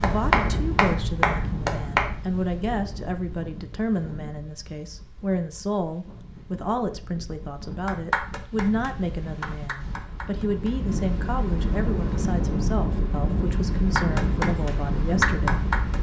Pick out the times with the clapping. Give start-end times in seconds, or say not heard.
0.0-2.1, 7.8-10.7, 13.9-15.9.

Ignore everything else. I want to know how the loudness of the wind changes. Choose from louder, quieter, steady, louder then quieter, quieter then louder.
quieter then louder.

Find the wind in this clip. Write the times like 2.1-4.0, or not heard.
0.0-15.9.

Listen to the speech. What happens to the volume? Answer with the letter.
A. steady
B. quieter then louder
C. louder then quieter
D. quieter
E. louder
A.